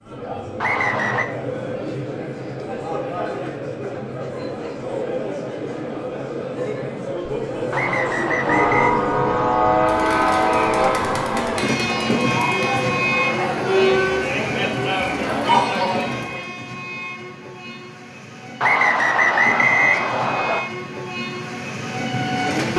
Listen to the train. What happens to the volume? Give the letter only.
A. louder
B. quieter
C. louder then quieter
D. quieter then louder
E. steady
D.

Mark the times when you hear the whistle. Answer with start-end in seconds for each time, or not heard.
0.6-1.2, 7.7-8.9, 18.6-20.6.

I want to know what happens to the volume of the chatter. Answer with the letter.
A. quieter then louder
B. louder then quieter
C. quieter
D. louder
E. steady
D.